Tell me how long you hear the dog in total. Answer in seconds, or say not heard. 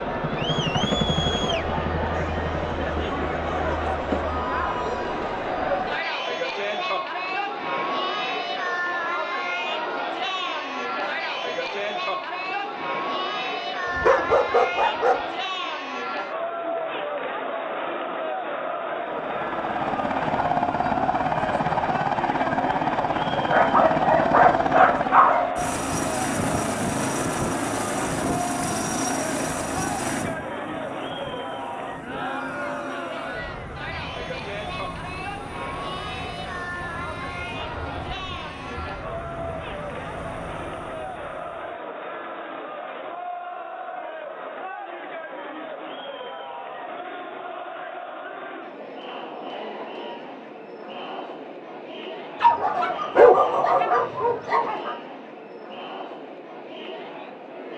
6 s.